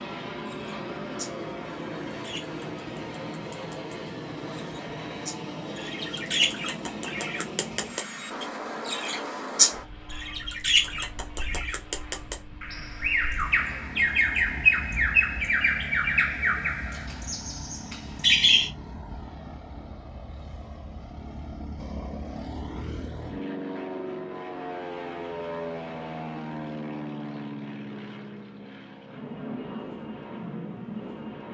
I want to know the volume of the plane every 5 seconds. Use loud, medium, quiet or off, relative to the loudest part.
loud, loud, medium, medium, loud, loud, loud.